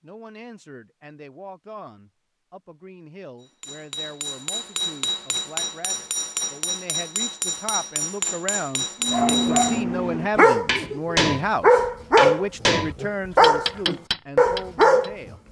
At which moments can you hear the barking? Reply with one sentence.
You can hear the barking from 9.0 to 15.2 s.